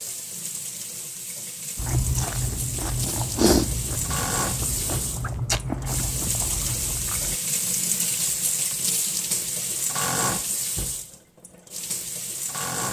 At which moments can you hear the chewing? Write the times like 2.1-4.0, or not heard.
1.8-7.4.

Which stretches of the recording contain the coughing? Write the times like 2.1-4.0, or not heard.
not heard.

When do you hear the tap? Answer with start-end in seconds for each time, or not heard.
0.0-12.8.